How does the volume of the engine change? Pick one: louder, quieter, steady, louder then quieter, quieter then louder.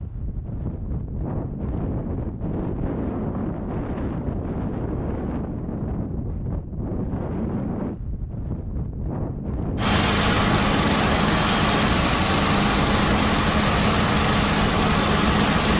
steady.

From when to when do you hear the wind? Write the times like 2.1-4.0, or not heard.
0.0-15.7.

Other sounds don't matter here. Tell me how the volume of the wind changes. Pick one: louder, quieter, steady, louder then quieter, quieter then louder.
steady.